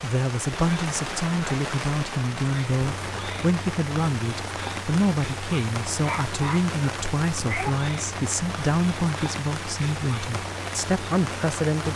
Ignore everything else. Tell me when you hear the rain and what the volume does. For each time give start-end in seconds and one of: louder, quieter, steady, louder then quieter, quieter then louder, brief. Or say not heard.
0.0-11.9 steady.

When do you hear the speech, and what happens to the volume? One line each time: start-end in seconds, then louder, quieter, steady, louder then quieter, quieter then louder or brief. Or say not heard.
0.0-11.9 steady.